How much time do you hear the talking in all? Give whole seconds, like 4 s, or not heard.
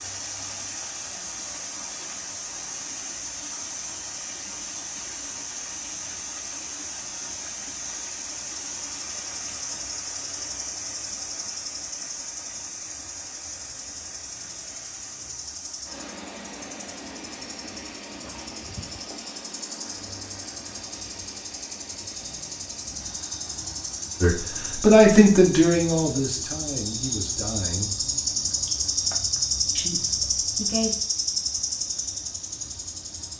5 s.